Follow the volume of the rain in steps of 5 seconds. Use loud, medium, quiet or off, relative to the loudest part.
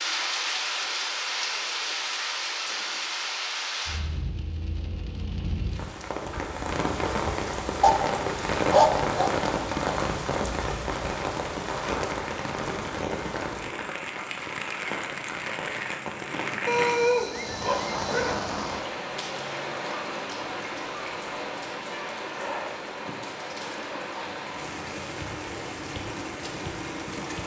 loud, loud, loud, loud, medium, medium.